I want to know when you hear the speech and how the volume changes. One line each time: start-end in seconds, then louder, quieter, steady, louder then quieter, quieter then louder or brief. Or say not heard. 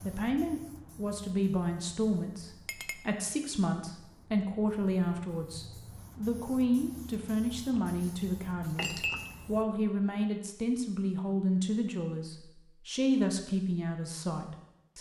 0.0-14.9 steady.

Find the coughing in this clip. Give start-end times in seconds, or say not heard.
not heard.